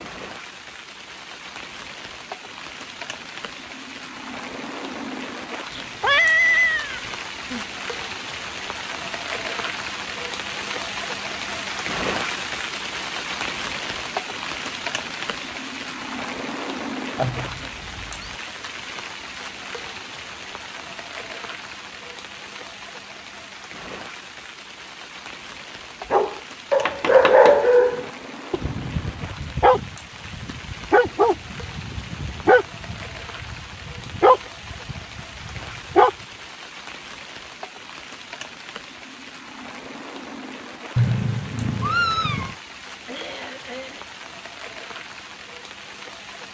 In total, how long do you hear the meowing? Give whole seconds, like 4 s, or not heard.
5 s.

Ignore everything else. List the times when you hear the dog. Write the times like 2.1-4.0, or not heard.
26.1-36.1.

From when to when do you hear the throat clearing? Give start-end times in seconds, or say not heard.
43.0-44.1.